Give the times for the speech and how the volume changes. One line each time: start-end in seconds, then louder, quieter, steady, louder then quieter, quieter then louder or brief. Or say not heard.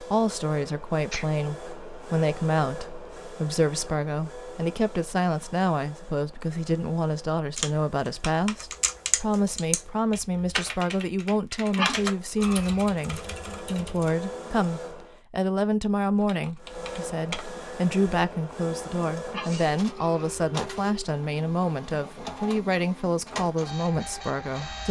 0.0-24.8 steady.